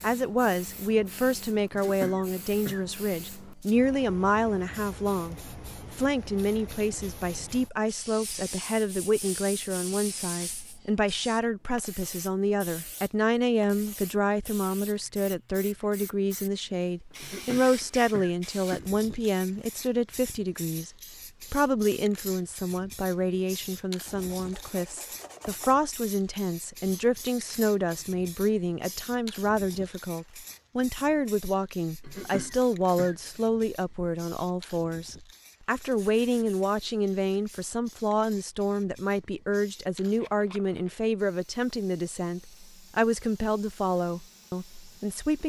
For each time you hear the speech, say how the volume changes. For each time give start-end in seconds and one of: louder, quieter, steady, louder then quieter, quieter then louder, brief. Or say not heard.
0.0-20.9 steady
21.5-45.4 steady.